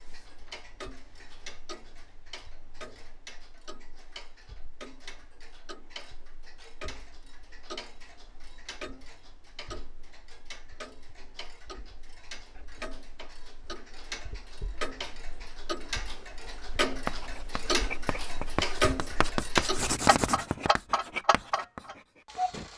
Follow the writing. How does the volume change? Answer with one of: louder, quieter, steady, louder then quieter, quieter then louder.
louder then quieter.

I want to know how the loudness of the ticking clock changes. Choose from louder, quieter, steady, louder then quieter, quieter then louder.
louder.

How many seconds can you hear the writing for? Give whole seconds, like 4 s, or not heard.
6 s.